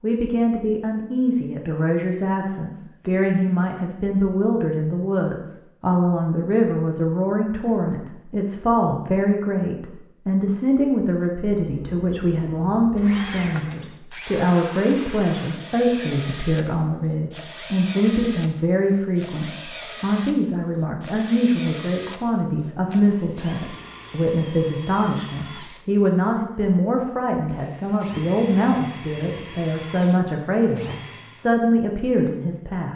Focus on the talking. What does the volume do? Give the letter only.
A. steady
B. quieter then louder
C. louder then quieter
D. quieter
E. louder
A.